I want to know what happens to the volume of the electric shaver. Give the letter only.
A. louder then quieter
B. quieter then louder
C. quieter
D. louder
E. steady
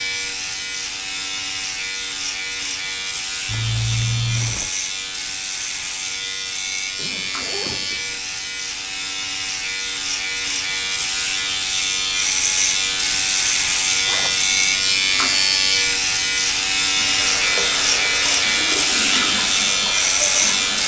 D.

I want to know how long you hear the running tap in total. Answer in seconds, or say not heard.
4 s.